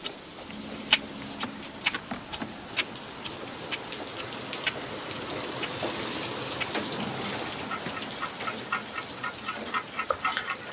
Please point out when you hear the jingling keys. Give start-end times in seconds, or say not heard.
0.5-2.5, 6.9-8.2.